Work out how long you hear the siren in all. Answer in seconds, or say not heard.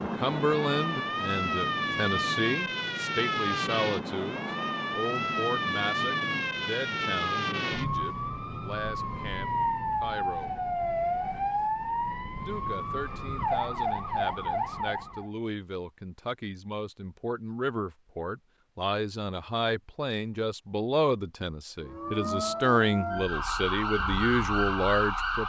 19 s.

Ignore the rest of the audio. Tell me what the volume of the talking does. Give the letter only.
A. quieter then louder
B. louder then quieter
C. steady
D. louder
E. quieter
A.